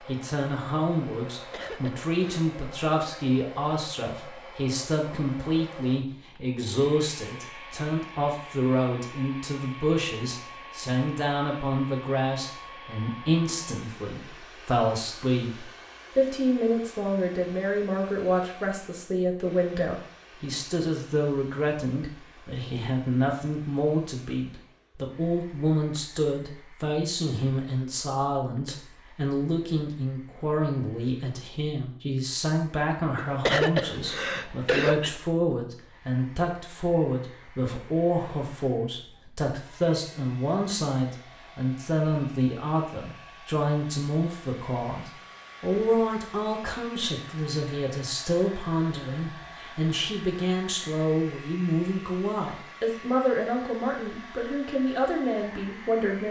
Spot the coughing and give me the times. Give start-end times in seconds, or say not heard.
1.4-2.5, 33.1-35.1.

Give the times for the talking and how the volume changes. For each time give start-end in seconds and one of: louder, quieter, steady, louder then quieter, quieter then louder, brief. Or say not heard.
0.1-56.2 steady.